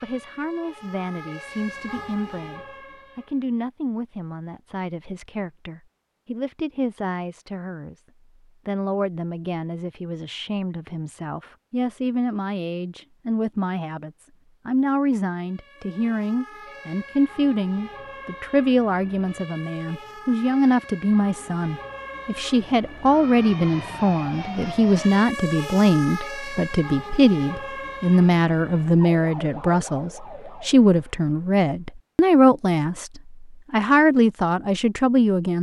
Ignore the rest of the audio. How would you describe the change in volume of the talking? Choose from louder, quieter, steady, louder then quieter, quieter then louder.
louder.